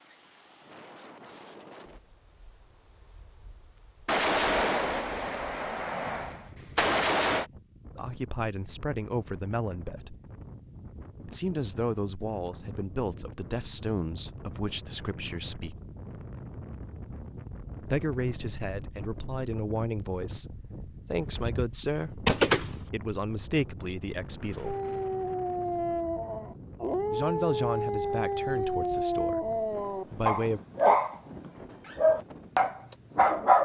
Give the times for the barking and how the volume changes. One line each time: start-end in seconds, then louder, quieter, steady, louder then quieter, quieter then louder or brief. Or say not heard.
24.6-33.6 louder.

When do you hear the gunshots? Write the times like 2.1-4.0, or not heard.
4.0-7.5, 21.1-22.8.